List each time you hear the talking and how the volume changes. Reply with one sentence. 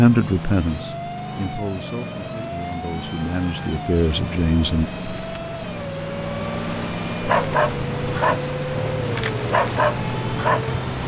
You can hear the talking from 0.0 to 4.8 s, getting quieter then louder.